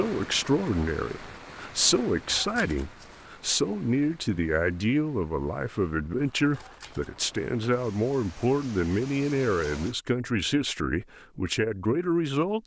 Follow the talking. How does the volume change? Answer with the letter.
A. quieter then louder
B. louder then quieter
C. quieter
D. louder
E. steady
E.